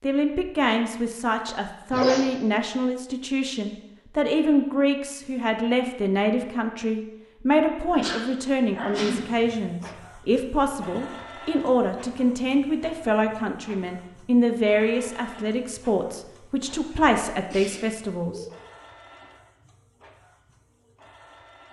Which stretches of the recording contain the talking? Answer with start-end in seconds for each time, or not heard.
0.0-18.4.